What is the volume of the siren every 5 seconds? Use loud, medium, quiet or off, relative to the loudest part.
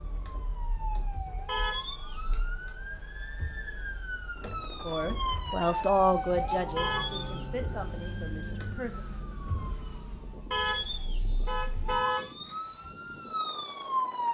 medium, loud, loud.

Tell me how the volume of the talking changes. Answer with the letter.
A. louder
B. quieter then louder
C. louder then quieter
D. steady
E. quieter
E.